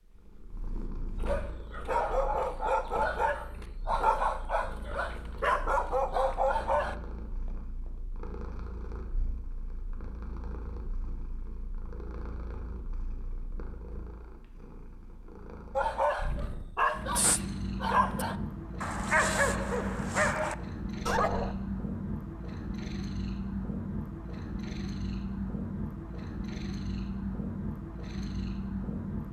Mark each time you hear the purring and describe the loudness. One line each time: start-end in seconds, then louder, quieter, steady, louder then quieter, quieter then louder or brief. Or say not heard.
0.0-29.2 louder.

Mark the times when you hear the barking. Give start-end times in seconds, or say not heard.
1.2-7.0, 15.8-21.6.